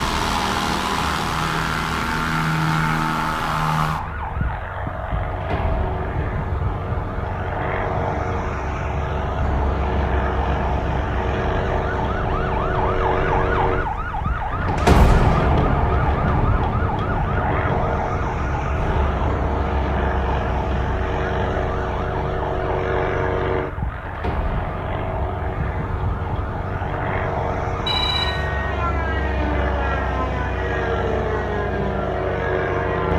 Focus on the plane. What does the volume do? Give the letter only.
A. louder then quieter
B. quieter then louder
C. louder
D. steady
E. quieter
D.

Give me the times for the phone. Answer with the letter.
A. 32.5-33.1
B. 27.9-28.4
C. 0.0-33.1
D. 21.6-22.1
B.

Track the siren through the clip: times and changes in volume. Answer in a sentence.
You can hear the siren from 0.0 to 33.1 s, getting louder then quieter.